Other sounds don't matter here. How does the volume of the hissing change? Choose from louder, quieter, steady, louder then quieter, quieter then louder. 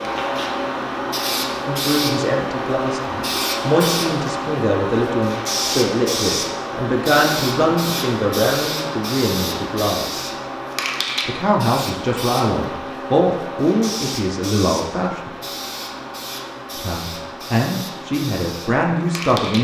quieter.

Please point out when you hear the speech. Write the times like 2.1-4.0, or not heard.
1.6-10.3, 11.2-15.3, 16.8-19.5.